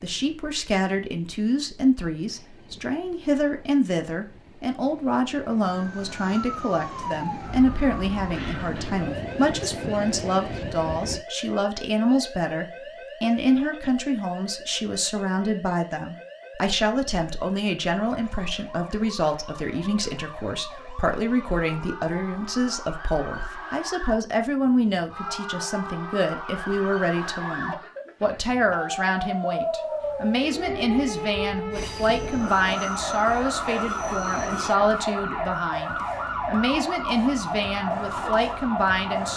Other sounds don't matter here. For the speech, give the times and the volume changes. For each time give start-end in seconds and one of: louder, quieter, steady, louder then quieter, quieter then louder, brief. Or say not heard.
0.0-39.3 steady.